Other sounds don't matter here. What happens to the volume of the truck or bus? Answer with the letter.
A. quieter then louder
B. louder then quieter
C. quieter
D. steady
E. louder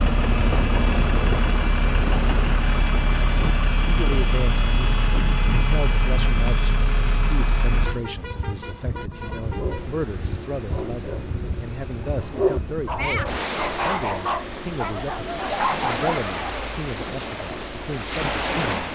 C.